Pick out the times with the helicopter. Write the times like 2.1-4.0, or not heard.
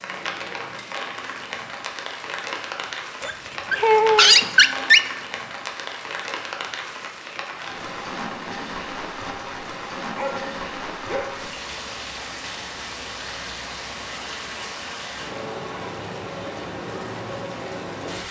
not heard.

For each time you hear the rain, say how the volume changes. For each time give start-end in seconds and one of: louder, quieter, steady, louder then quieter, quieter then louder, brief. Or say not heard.
0.0-18.2 steady.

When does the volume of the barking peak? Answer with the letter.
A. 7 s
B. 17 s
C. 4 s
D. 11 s
C.